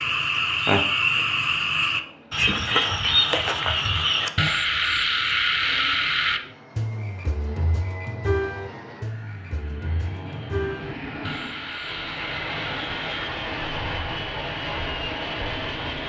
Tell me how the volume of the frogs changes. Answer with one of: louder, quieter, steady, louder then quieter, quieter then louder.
quieter.